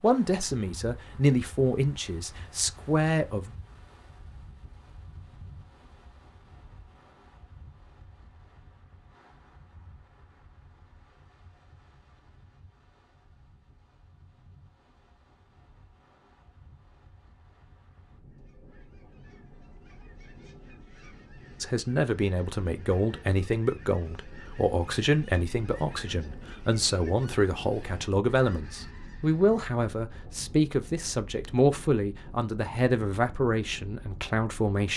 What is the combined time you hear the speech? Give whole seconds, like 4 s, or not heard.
17 s.